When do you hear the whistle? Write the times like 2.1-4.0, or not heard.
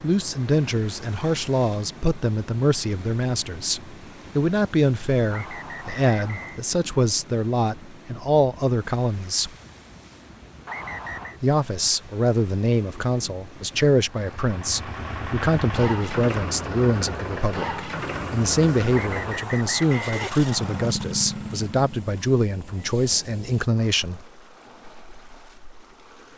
5.3-6.6, 10.7-11.4, 18.9-20.9.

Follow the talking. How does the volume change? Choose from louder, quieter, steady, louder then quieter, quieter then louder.
steady.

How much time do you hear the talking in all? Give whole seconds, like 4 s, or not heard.
22 s.